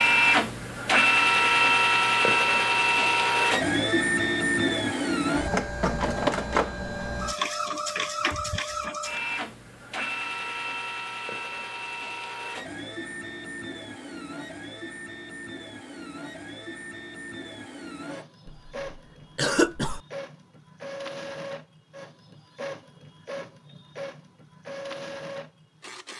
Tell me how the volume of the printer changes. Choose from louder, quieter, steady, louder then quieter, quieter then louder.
quieter.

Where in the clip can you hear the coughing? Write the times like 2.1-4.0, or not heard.
18.4-20.0.